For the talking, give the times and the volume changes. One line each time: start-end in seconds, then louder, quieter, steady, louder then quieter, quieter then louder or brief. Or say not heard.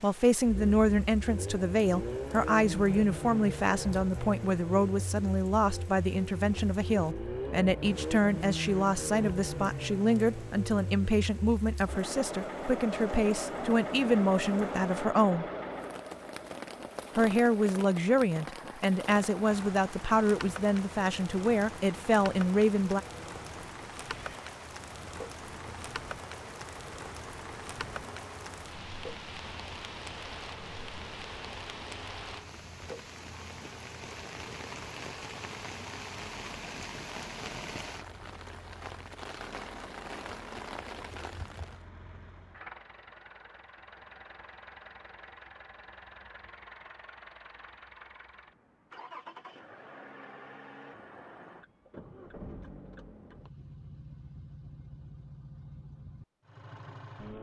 0.0-15.4 steady
17.1-23.0 steady.